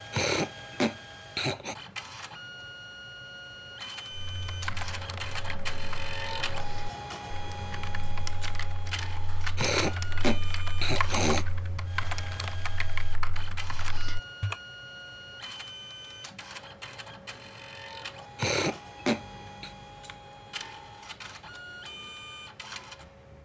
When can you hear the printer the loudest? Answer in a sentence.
The volume of the printer peaks at 6 seconds.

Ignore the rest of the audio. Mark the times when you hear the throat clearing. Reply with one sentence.
You can hear the throat clearing from 0.1 to 1.8 s, from 9.6 to 11.4 s and from 18.4 to 19.7 s.